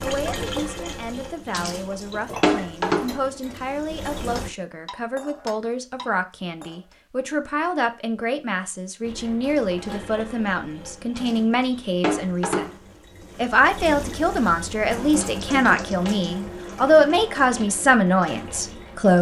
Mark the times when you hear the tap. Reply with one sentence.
You can hear the tap from 0.0 to 4.5 s and from 9.0 to 19.1 s.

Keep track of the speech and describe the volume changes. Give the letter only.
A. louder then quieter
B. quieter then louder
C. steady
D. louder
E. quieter
D.